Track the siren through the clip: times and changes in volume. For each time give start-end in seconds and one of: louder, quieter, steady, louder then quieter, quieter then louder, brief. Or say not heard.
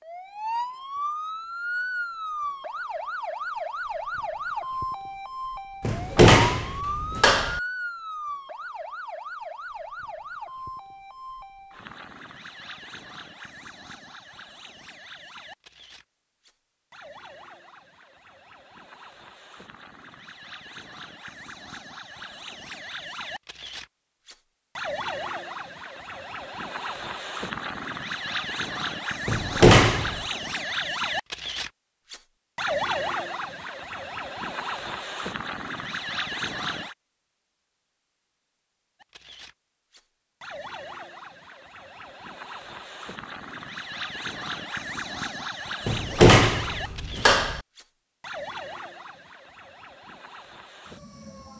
0.0-37.0 quieter then louder
39.0-51.5 louder then quieter.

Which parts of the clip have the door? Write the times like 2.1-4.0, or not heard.
5.8-7.6, 29.2-30.2, 45.9-47.6.